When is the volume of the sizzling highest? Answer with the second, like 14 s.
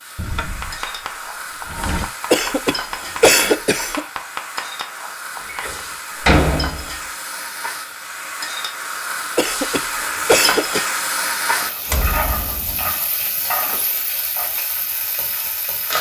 11 s.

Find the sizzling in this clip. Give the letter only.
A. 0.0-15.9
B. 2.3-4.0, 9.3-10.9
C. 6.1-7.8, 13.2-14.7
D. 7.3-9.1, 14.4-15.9
A.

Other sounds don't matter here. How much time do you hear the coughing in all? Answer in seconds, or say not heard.
3 s.